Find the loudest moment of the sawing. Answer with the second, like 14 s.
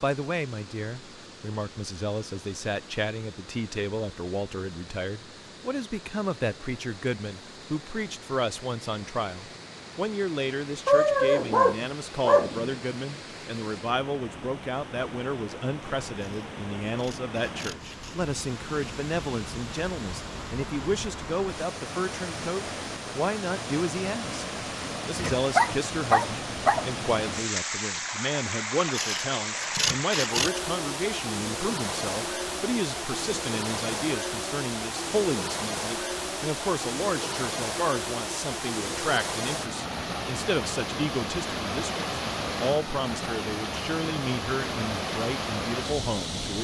30 s.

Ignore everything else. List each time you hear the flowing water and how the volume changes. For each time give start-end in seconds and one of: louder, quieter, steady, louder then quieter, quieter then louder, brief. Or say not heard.
0.0-46.5 louder.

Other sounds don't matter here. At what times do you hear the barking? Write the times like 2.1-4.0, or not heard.
10.8-12.8, 25.1-26.9.